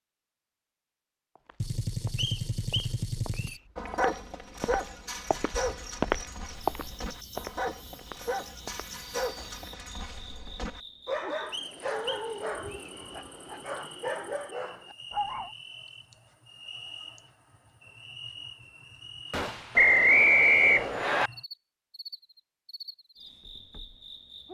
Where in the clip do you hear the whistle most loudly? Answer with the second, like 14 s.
20 s.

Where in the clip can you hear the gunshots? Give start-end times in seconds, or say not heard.
1.6-3.6, 19.3-19.9.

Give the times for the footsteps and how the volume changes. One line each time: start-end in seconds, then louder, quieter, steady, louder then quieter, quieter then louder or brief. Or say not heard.
1.4-9.7 louder then quieter.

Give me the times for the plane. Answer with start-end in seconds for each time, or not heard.
not heard.